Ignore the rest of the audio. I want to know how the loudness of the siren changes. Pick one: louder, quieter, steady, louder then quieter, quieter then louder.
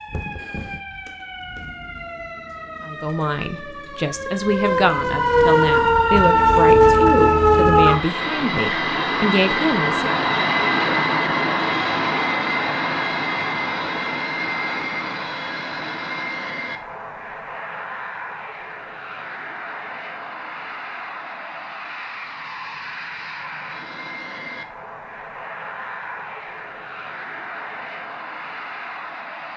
louder.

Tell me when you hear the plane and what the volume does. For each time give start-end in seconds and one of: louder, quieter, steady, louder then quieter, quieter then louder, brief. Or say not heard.
6.3-29.5 quieter.